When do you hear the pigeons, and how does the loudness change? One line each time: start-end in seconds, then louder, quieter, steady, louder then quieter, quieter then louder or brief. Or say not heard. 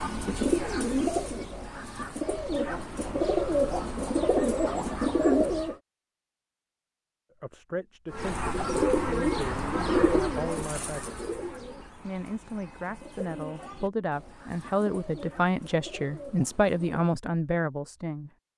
0.0-5.8 quieter then louder
8.1-17.1 quieter.